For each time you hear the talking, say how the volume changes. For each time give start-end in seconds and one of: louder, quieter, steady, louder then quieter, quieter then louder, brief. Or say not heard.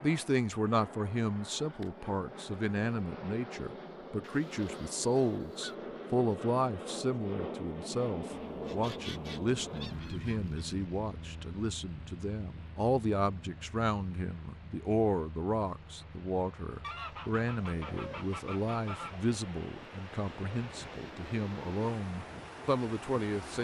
0.0-23.5 steady.